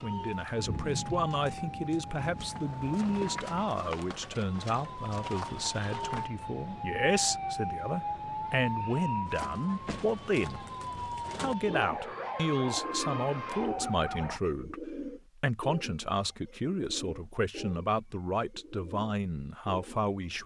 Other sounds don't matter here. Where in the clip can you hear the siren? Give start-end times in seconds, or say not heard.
0.0-14.4.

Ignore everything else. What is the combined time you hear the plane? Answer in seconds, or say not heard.
not heard.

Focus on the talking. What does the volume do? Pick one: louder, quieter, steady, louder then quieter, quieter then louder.
steady.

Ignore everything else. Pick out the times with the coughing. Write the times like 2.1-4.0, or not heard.
not heard.